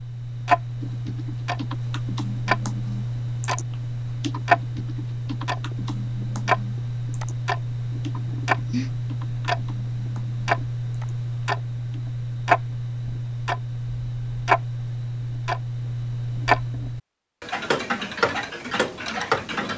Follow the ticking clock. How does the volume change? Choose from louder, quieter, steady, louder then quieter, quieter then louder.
steady.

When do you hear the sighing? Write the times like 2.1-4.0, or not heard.
8.2-8.9.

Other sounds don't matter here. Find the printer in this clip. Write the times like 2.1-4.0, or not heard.
not heard.